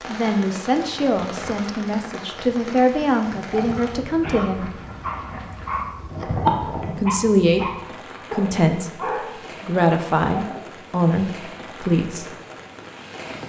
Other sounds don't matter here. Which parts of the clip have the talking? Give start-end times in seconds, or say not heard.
0.1-4.8, 7.0-7.7, 8.3-12.3.